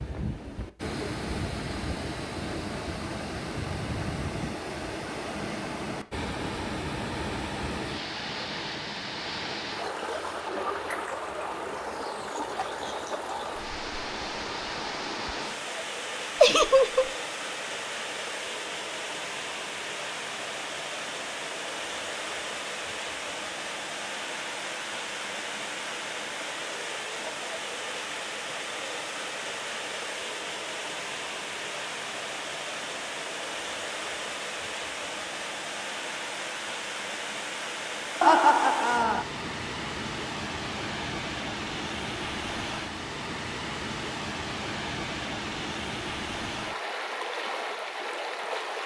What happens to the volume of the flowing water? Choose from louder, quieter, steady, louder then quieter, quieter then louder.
steady.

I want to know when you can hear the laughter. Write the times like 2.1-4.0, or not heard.
16.4-17.1, 38.2-39.2.